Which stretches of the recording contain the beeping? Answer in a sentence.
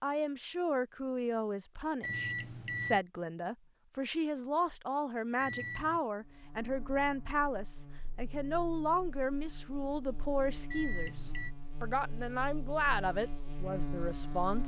You can hear the beeping from 2.0 to 3.0 s, from 5.4 to 6.0 s and from 10.7 to 11.6 s.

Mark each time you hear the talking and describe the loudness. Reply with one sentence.
You can hear the talking from 0.0 to 14.6 s, at a steady volume.